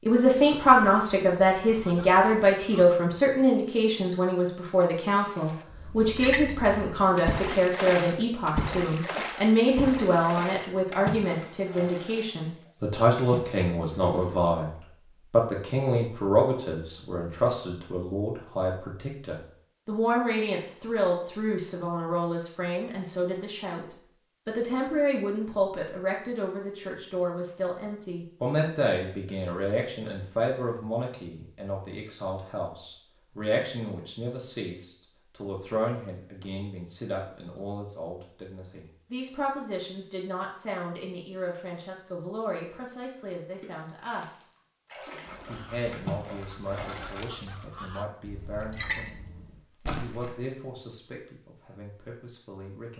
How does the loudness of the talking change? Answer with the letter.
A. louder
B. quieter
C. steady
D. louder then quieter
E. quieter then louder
B.